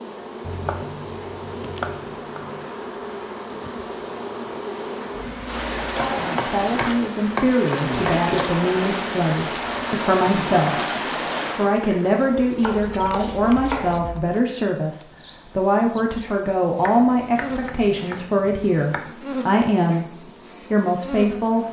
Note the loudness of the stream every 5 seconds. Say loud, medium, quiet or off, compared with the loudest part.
quiet, loud, loud, off, off.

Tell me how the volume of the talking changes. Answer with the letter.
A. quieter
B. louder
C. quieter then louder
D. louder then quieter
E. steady
E.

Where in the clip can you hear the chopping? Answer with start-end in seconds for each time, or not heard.
0.4-2.6, 6.0-8.5, 12.6-14.2, 16.8-19.1.